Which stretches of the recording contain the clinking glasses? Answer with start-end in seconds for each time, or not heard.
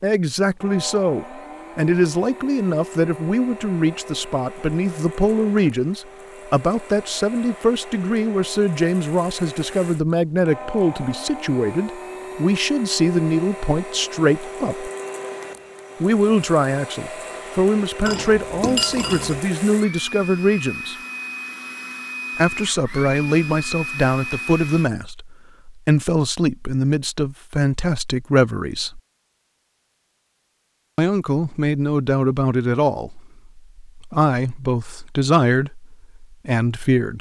18.1-19.4.